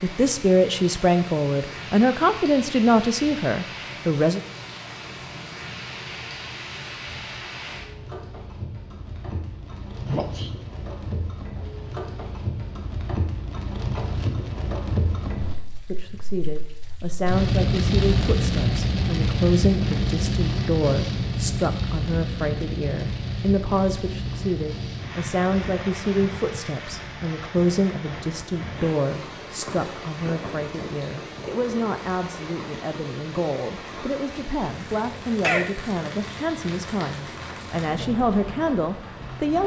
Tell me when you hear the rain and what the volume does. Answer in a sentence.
The rain can be heard from 0.0 to 39.6 s, getting louder then quieter.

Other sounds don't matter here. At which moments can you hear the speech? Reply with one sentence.
You can hear the speech from 0.0 to 4.4 s and from 15.8 to 39.6 s.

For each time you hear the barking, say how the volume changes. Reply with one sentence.
The barking can't be heard in this clip.